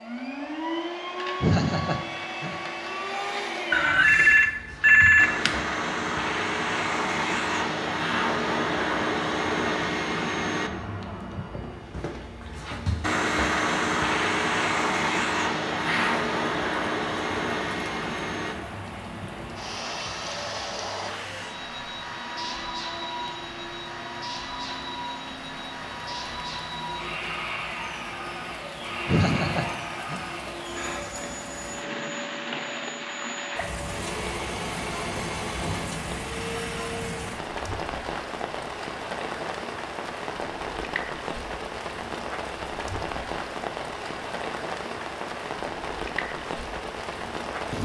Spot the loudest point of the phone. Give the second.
5 s.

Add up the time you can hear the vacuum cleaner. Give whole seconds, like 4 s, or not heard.
37 s.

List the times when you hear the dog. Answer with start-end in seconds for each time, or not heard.
not heard.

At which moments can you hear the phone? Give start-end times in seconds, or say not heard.
3.7-5.6.